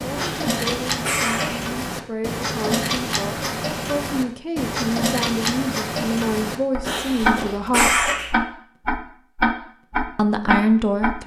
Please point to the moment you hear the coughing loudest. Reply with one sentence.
The loudest moment of the coughing is at 8 seconds.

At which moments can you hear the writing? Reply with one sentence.
You can't hear the writing here.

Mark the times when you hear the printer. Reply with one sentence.
You can't hear the printer here.